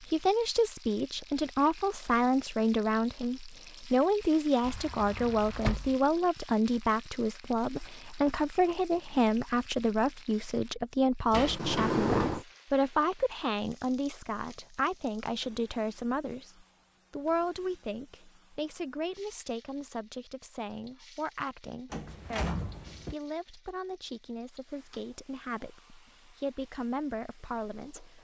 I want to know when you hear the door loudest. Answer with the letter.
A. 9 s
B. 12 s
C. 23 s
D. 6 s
B.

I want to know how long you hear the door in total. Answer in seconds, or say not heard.
4 s.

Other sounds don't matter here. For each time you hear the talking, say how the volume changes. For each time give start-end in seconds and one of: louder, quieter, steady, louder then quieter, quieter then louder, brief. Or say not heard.
0.0-28.1 quieter.